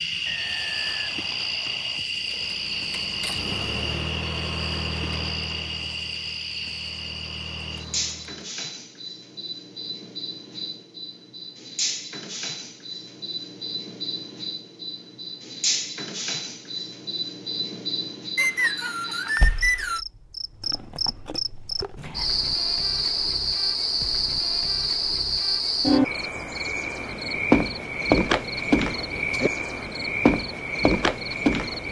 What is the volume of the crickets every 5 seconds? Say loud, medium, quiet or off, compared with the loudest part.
medium, medium, medium, medium, loud, loud, loud.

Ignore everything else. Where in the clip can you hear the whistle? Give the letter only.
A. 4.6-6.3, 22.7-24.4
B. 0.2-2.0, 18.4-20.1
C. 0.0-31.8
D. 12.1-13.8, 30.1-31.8
B.